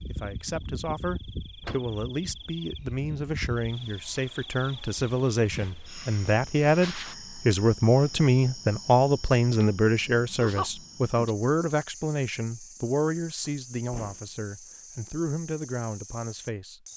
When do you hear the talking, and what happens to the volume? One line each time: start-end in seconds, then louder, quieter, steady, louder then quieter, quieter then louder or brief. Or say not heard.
0.1-16.9 louder then quieter.